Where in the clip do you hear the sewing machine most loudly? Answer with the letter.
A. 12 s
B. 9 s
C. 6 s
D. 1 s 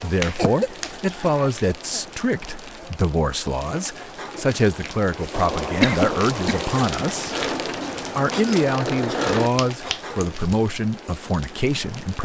B.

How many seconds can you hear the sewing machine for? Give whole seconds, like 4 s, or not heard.
4 s.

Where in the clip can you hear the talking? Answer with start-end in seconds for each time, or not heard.
0.0-7.3, 8.2-12.2.